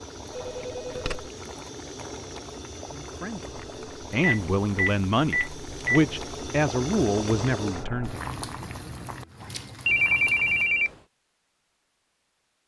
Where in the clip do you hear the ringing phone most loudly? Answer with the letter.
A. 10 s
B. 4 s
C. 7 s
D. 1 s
A.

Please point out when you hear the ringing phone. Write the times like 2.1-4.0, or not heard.
0.3-1.3, 4.2-6.1, 9.8-10.9.